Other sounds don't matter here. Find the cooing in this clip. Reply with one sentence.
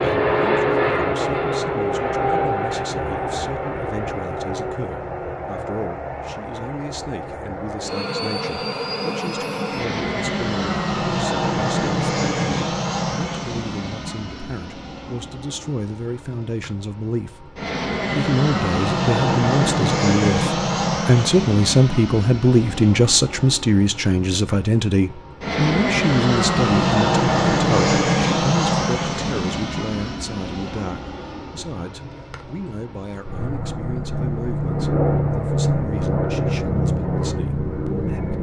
You can't hear the cooing here.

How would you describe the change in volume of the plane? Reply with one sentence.
The loudness of the plane stays about the same.